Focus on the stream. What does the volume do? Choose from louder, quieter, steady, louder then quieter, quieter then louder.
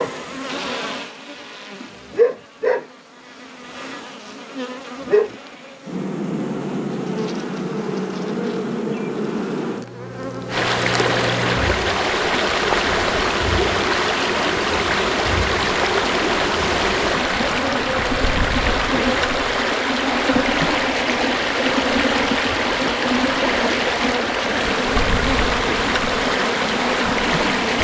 steady.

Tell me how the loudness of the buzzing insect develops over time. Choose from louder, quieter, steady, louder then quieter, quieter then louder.
steady.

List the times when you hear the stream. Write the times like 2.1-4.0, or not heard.
10.4-27.7.